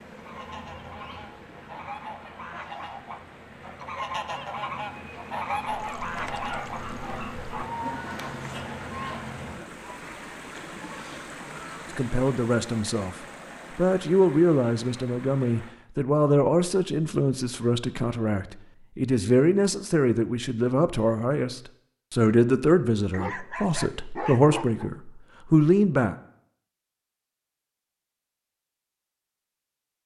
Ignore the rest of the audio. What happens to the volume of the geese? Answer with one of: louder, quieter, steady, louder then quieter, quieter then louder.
louder then quieter.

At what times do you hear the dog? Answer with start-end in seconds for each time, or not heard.
5.7-7.7, 23.1-24.9.